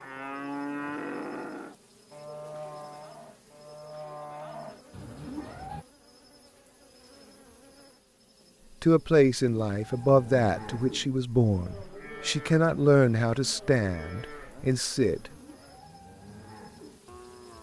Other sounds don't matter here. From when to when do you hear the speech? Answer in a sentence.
You can hear the speech from 8.8 to 15.3 s.